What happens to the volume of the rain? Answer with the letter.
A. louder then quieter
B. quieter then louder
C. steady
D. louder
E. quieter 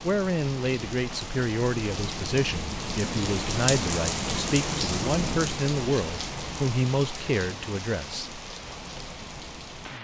A.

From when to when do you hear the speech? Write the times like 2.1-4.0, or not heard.
0.0-8.4.